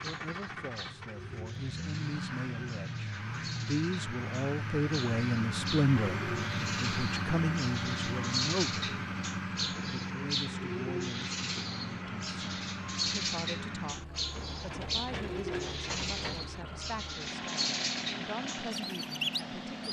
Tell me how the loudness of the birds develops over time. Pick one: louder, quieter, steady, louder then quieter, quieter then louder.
louder.